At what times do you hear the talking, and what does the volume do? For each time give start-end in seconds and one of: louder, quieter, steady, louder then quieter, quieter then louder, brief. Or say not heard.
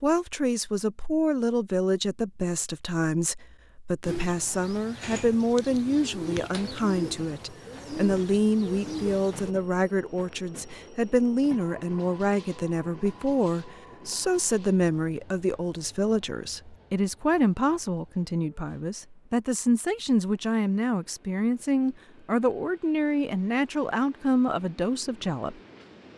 0.0-25.6 steady.